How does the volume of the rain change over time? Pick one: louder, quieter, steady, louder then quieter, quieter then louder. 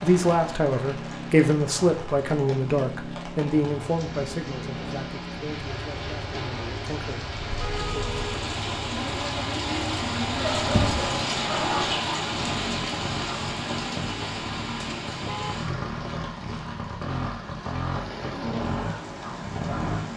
louder then quieter.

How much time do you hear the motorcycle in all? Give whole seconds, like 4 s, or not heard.
20 s.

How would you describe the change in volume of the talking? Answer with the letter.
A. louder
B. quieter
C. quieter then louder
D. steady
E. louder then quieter
B.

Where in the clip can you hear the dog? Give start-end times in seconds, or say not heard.
10.4-11.9.